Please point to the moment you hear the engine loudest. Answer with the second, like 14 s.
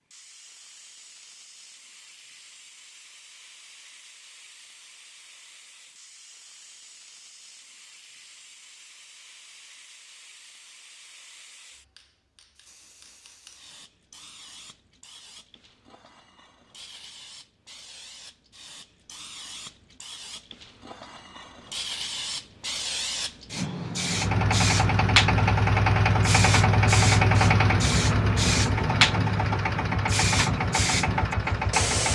27 s.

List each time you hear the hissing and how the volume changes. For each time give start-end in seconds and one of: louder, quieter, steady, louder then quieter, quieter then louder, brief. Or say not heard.
0.1-32.1 louder.